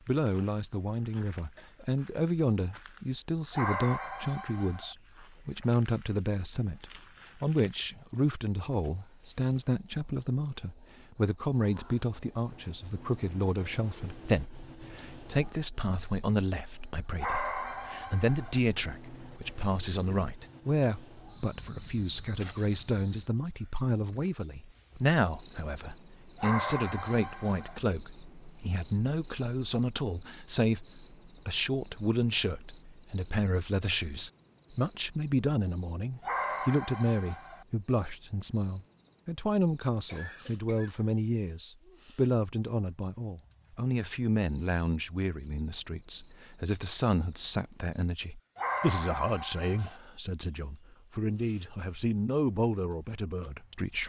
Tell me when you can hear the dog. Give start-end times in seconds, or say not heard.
3.5-5.0, 17.1-18.6, 26.4-27.8, 36.2-37.6, 48.5-50.0.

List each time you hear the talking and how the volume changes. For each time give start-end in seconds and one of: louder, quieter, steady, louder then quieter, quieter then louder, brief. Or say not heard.
0.1-54.0 steady.